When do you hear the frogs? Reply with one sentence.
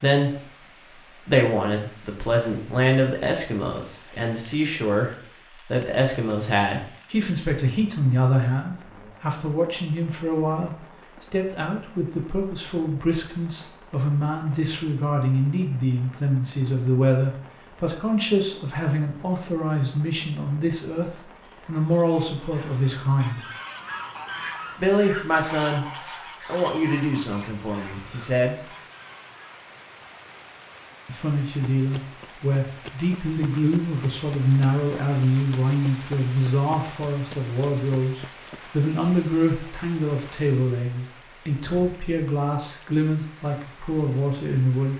You can't hear the frogs here.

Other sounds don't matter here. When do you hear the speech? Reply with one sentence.
The speech can be heard from 0.0 to 0.5 s, from 1.2 to 23.4 s, from 24.8 to 28.6 s and from 31.1 to 44.9 s.